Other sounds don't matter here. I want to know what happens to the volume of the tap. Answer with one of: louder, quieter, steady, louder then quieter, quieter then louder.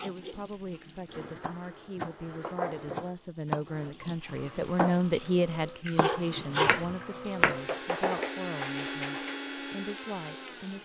louder then quieter.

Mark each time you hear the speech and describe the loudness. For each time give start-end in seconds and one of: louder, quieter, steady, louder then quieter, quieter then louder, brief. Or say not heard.
0.0-10.8 louder then quieter.